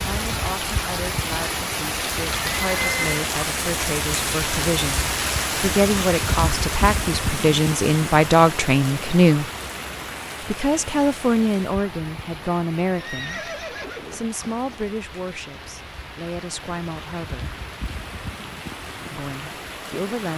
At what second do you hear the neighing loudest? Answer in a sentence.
The loudest moment of the neighing is at 3 seconds.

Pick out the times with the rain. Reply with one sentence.
The rain can be heard from 0.0 to 20.3 s.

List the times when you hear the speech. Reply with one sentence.
You can hear the speech from 0.0 to 9.4 s, from 10.4 to 13.5 s, from 14.1 to 17.6 s and from 19.1 to 20.3 s.